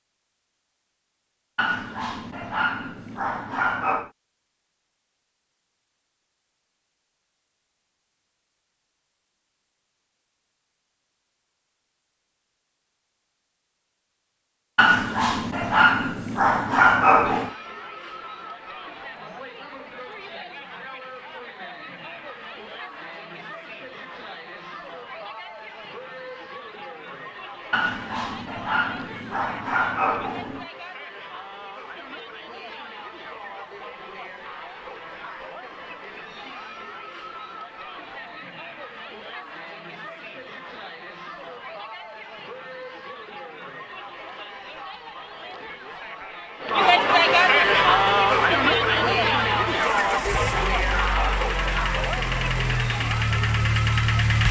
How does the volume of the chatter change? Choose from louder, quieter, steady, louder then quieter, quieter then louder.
louder.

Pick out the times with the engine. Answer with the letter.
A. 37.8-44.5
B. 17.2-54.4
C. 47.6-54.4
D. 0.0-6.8
C.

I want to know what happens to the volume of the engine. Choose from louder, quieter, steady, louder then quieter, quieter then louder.
louder.